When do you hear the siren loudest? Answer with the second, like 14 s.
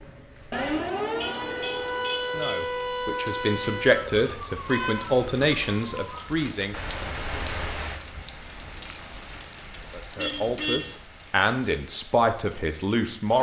1 s.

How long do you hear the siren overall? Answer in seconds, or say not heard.
6 s.